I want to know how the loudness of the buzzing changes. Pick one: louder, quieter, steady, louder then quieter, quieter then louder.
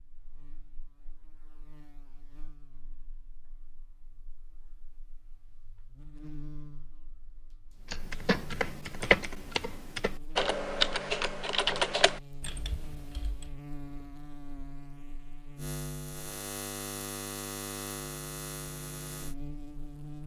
louder.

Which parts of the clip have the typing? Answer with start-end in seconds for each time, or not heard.
7.9-13.6.